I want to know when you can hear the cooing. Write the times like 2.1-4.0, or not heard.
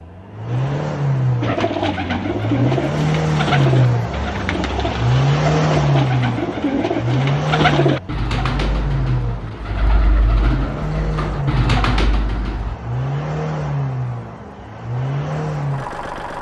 1.4-12.8.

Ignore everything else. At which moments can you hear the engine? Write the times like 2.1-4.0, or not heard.
0.0-16.3.